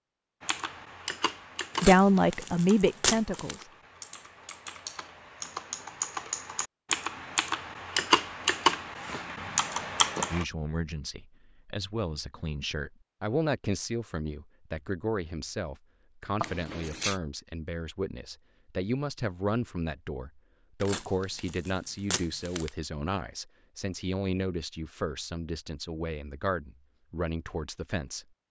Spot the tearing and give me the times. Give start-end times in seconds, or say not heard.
1.8-3.5, 16.4-17.1, 20.8-22.7.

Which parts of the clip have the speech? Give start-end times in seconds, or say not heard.
1.8-3.7, 10.3-28.2.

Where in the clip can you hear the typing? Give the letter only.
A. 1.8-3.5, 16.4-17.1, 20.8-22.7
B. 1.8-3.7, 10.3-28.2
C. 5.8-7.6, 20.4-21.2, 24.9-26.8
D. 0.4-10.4
D.